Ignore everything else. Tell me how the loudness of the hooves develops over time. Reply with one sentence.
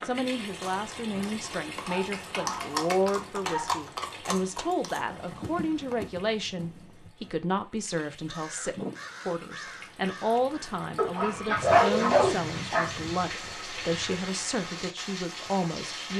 The loudness of the hooves goes up, then down.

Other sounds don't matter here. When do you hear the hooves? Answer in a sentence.
The hooves can be heard from 0.2 to 7.3 s.